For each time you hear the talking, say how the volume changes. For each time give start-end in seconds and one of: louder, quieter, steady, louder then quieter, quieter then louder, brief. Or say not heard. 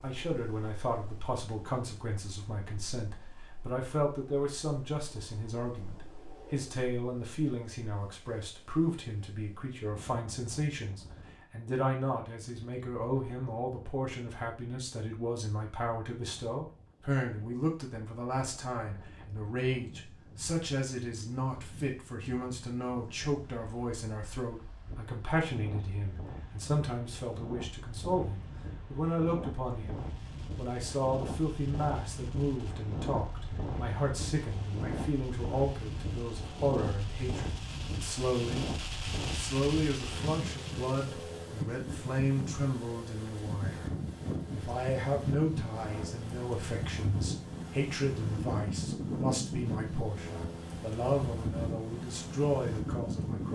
0.0-38.6 steady
39.3-53.4 steady.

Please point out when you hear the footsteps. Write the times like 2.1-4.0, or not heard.
not heard.